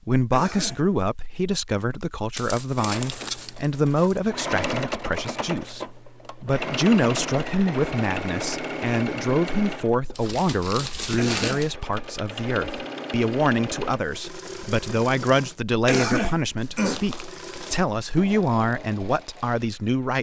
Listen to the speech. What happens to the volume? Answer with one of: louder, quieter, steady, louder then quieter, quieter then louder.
steady.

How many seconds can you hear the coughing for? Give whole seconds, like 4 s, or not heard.
2 s.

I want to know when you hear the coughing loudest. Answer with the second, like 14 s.
16 s.